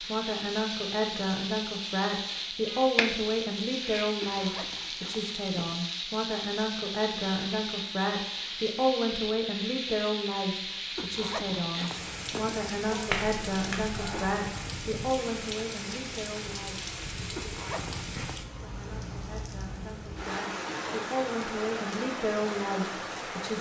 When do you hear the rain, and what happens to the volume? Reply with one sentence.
The rain can be heard from 0.0 to 23.5 s, at a steady volume.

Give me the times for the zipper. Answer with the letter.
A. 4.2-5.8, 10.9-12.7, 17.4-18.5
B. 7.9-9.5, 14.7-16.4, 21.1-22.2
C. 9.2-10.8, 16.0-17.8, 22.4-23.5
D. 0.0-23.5
A.